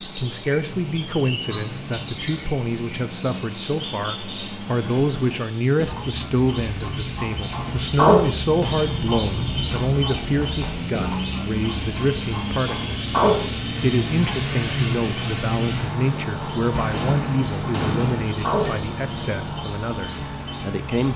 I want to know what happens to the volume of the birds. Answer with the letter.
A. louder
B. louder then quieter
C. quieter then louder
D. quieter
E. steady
B.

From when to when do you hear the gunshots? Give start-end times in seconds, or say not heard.
16.7-18.7.